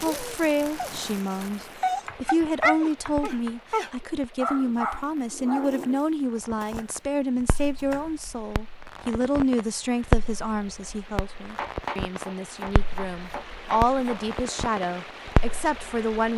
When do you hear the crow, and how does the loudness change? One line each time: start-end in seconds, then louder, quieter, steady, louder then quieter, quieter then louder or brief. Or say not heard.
not heard.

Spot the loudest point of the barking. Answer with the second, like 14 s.
3 s.